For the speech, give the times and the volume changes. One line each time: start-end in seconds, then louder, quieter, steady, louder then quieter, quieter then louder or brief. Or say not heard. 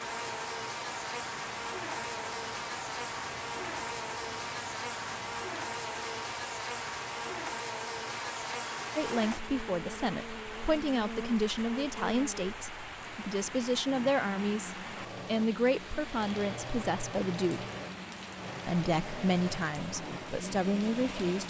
8.9-17.6 steady
18.6-21.4 brief.